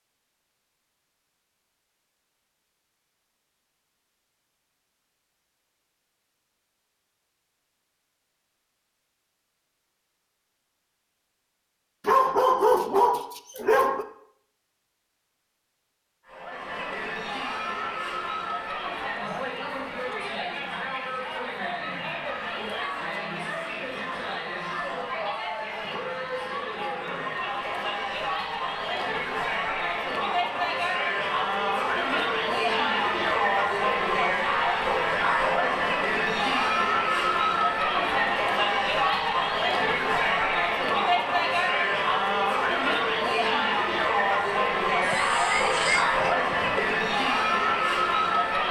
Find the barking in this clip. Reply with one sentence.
You can hear the barking from 12.1 to 14.1 s and from 45.0 to 46.9 s.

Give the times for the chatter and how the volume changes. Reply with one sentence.
The chatter can be heard from 16.2 to 48.6 s, getting louder.